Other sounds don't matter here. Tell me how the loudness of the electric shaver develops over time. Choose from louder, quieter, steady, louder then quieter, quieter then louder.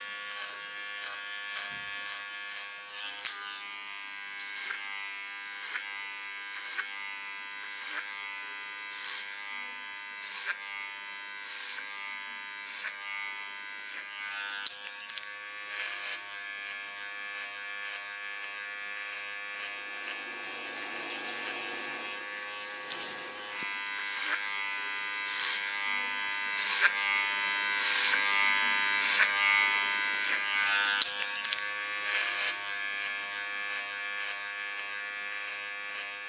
louder.